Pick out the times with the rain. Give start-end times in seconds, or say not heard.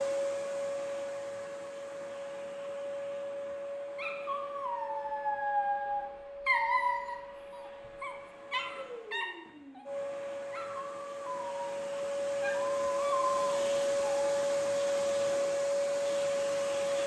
not heard.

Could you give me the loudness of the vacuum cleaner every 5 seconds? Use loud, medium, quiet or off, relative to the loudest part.
medium, quiet, loud, loud.